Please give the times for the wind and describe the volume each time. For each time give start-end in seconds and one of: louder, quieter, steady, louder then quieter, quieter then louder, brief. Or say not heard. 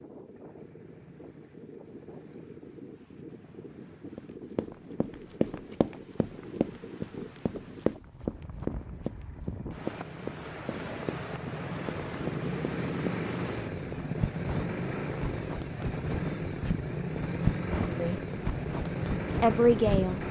0.0-20.2 louder.